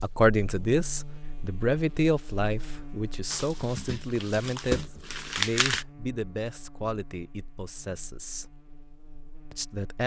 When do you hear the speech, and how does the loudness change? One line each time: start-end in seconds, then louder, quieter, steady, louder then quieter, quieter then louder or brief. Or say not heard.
0.0-8.6 quieter
9.5-10.0 brief.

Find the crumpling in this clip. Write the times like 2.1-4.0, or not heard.
3.3-5.8.